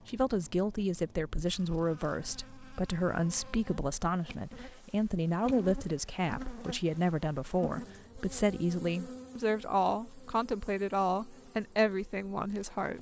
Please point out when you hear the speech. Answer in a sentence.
The speech can be heard from 0.1 to 12.9 s.